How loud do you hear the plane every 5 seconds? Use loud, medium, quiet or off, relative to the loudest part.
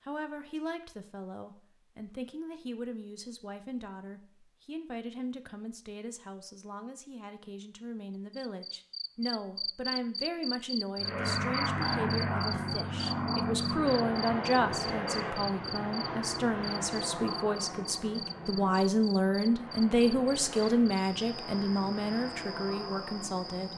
off, off, loud, medium, medium.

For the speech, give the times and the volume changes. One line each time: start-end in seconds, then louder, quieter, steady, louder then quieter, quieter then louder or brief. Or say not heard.
0.0-23.7 louder.